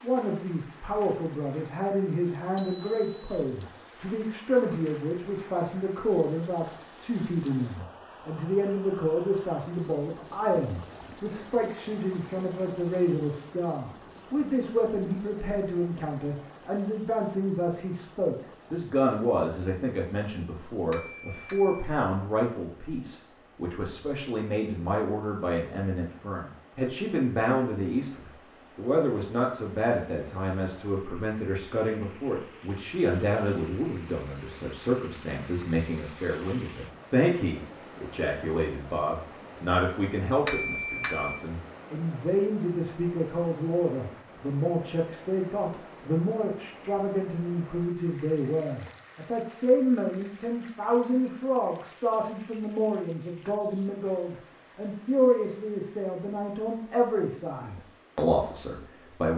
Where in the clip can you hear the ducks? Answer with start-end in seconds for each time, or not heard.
not heard.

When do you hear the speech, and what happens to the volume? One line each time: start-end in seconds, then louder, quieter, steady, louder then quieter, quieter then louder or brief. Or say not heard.
0.0-59.3 steady.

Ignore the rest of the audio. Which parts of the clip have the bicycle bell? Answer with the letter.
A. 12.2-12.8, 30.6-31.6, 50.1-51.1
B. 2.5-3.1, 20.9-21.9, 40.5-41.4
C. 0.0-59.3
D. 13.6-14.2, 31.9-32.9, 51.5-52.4
B.